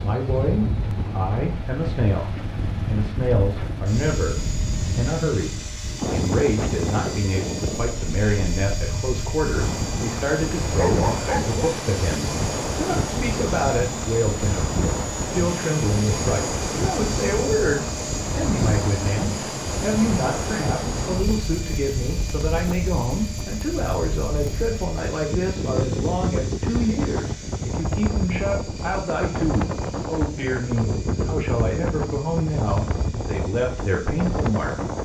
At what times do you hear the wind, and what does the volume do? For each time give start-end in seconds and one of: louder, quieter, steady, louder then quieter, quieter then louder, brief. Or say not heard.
0.0-35.0 steady.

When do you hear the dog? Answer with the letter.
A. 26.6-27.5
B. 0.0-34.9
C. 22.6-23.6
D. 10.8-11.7
D.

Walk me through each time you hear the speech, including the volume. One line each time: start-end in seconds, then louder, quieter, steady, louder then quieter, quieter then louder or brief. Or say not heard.
0.0-34.9 steady.